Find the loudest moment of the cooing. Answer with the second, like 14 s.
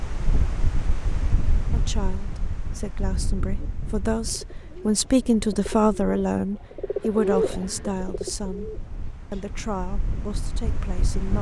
7 s.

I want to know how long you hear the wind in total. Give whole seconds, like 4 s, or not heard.
11 s.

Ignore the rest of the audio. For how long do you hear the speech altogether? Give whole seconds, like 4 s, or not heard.
9 s.